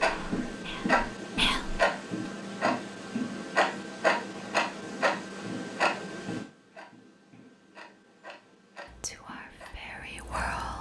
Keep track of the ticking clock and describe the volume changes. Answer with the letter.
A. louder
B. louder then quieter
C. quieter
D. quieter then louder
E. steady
C.